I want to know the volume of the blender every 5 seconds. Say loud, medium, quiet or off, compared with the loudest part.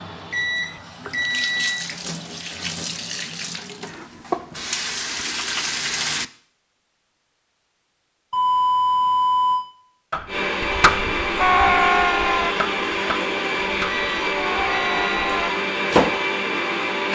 off, off, loud, loud.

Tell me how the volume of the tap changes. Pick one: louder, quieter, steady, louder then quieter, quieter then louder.
louder.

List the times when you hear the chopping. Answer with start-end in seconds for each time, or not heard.
10.1-16.1.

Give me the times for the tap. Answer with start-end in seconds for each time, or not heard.
0.0-6.3.